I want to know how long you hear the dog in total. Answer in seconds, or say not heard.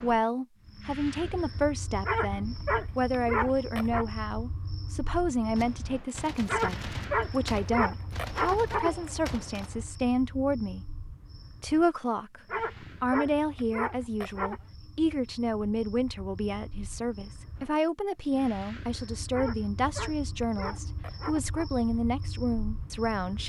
9 s.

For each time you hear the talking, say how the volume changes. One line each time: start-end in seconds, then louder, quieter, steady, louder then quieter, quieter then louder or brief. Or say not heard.
0.0-10.8 steady
11.6-23.4 steady.